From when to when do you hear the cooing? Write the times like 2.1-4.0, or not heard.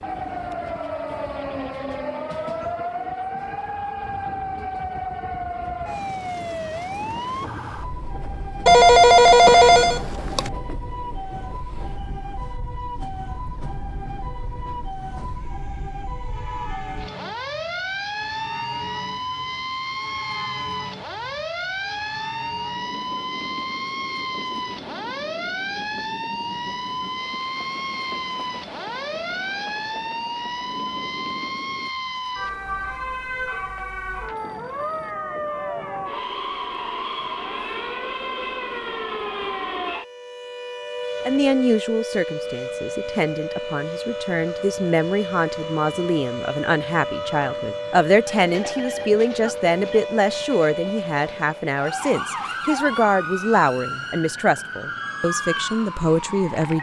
not heard.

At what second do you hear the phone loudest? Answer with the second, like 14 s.
9 s.